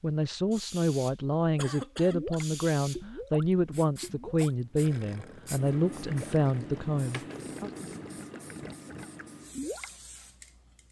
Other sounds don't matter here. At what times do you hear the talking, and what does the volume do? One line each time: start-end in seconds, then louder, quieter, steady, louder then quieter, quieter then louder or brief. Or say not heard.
0.0-7.7 steady.